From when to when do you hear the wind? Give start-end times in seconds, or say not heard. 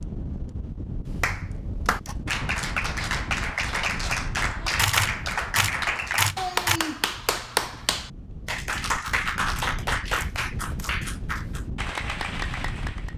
0.0-13.1.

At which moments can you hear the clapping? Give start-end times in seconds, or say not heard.
1.2-13.1.